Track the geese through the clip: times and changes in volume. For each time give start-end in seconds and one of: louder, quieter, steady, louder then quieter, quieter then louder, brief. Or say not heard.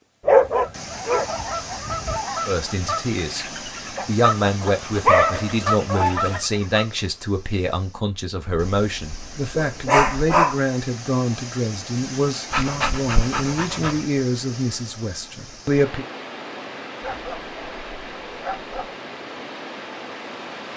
0.6-6.8 quieter then louder.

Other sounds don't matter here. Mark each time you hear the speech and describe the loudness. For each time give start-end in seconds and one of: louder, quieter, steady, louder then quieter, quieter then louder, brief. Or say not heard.
2.5-16.1 steady.